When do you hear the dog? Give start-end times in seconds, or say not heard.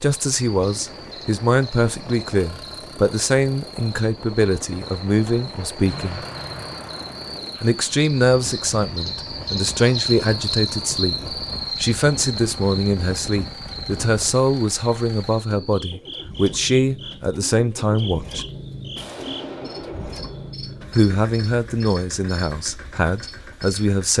not heard.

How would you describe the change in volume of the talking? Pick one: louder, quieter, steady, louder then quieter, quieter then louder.
steady.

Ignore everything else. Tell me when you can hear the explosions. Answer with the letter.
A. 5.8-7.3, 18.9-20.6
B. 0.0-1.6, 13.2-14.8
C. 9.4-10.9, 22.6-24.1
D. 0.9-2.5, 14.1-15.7
A.